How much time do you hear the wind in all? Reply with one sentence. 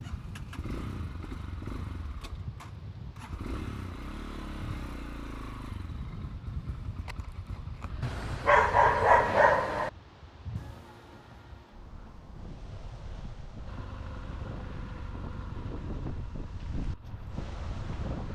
You can hear the wind for 18 seconds altogether.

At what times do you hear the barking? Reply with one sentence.
You can hear the barking from 8.0 to 9.9 s.